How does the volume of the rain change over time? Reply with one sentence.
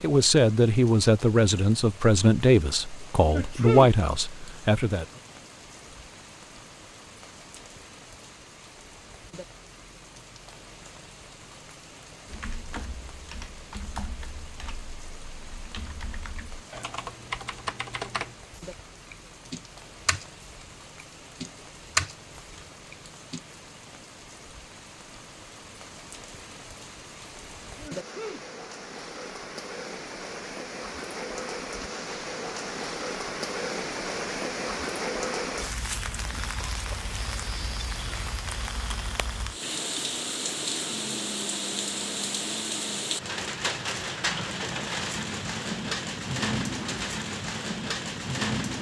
The loudness of the rain goes up.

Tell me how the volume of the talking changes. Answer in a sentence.
The loudness of the talking stays about the same.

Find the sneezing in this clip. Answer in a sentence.
The sneezing can be heard from 3.2 to 4.0 s and from 27.8 to 28.5 s.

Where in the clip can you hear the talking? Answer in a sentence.
The talking can be heard from 0.0 to 5.0 s.